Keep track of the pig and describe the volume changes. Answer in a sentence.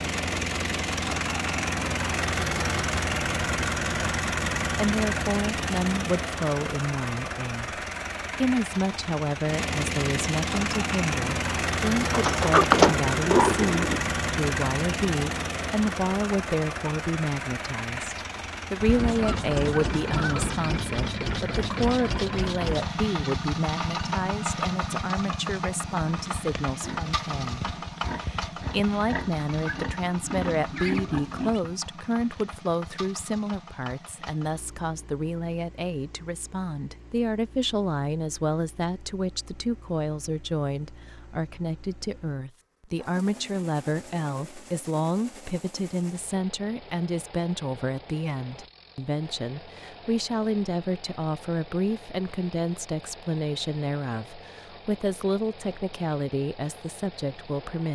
The volume of the pig goes up.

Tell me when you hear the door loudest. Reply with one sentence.
The loudest moment of the door is at 13 seconds.